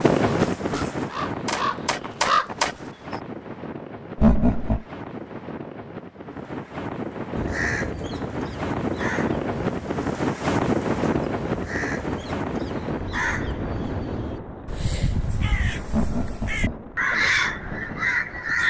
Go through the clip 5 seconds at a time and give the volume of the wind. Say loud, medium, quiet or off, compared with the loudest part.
loud, loud, loud, medium.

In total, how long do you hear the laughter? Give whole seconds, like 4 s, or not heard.
2 s.